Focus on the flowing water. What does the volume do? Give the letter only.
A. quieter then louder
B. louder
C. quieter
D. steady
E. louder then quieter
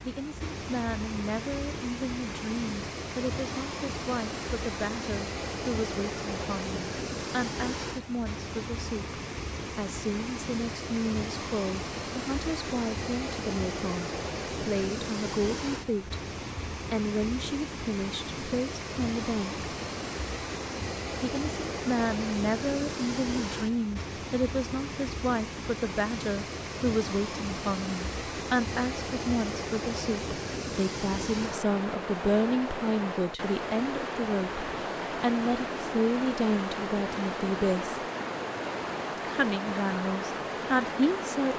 D.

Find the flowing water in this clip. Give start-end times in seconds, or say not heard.
0.0-41.5.